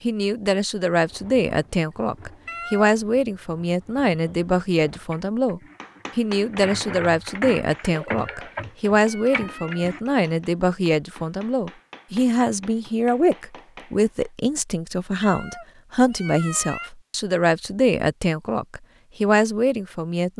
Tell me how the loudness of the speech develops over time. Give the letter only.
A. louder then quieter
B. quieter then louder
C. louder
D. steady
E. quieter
D.